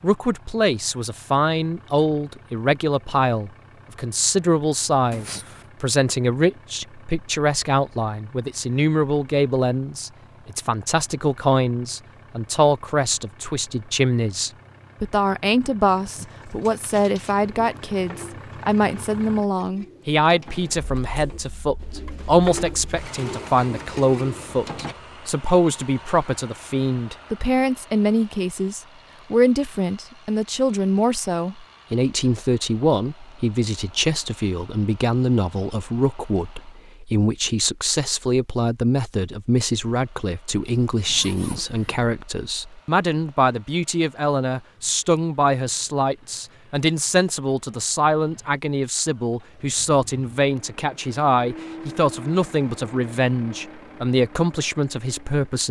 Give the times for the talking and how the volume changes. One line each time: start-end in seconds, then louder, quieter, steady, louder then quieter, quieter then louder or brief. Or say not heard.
0.0-55.6 steady.